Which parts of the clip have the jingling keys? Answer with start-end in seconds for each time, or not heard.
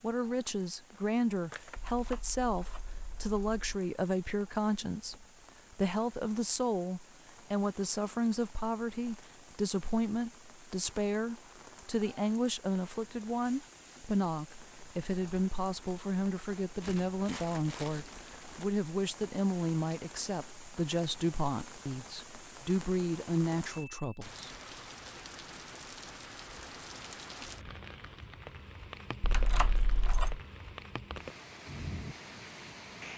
1.8-3.8, 29.2-30.4.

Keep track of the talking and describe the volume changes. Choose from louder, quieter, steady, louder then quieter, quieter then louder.
steady.